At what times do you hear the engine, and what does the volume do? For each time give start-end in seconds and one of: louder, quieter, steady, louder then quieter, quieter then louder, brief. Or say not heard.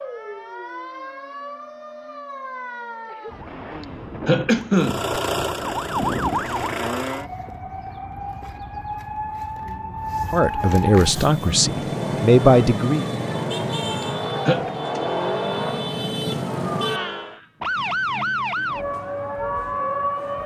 4.8-7.2 brief
10.9-17.4 louder then quieter.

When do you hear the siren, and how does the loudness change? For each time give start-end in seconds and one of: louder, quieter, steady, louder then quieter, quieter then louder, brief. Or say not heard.
0.0-20.4 louder.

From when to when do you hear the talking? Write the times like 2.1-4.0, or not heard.
10.3-13.1.